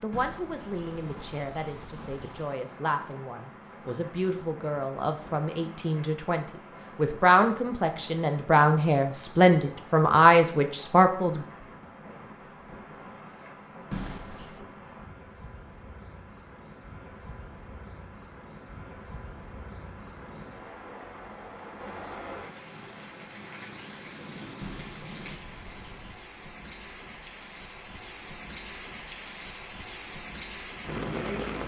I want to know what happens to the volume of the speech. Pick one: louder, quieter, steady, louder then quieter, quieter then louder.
louder.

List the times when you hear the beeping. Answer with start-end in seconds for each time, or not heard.
0.1-2.5, 13.9-14.7, 24.6-26.2.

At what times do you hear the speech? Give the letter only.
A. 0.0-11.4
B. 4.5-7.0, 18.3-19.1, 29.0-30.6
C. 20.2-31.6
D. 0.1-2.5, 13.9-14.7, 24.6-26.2
A.